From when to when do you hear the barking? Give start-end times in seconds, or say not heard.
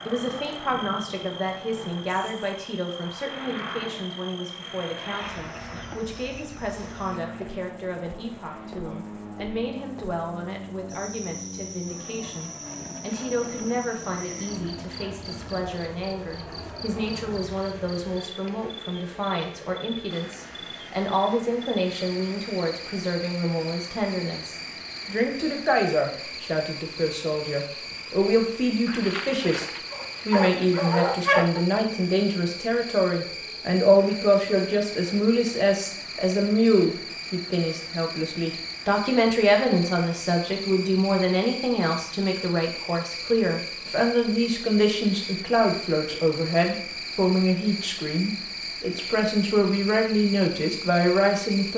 28.9-31.6.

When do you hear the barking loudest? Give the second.
31 s.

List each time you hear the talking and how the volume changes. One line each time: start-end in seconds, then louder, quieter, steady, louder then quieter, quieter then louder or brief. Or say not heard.
0.1-51.7 louder.